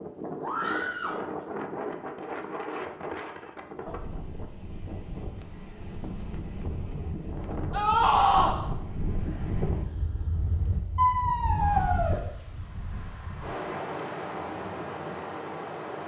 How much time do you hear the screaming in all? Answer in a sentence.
The screaming can be heard for 3 seconds in total.